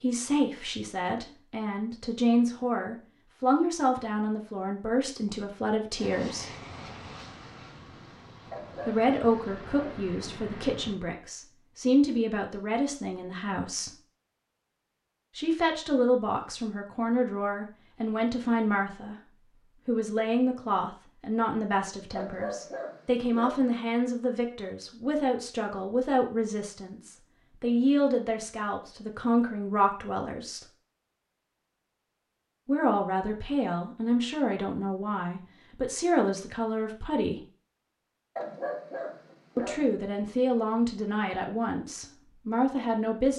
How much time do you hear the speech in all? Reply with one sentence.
You can hear the speech for 35 seconds altogether.